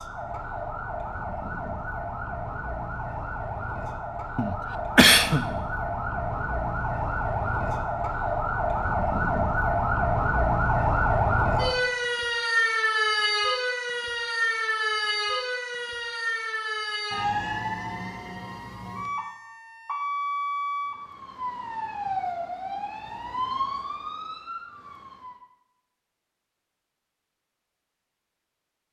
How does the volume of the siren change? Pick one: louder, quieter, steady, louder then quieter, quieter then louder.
louder then quieter.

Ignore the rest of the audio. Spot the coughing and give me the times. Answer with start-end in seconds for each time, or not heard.
4.3-5.5.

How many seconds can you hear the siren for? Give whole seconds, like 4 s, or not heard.
25 s.